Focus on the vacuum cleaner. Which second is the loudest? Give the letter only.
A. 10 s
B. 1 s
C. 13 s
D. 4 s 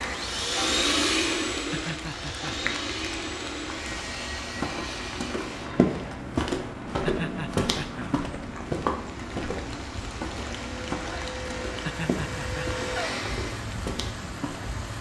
B.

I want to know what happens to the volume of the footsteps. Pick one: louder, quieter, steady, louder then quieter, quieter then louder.
quieter.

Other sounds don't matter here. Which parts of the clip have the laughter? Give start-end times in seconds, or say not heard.
1.7-2.8, 7.0-8.1, 11.8-12.8.